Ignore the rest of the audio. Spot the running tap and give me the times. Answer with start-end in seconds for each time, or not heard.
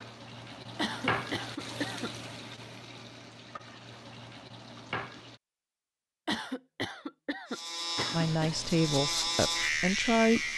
0.0-5.4, 8.0-10.5.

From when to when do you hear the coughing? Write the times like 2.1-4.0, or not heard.
0.8-2.1, 6.2-8.6.